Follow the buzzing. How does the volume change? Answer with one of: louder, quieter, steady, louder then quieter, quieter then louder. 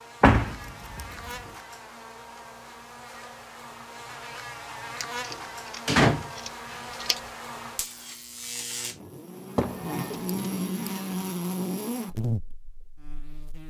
louder.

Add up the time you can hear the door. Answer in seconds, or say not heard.
3 s.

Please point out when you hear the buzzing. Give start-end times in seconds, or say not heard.
0.0-13.6.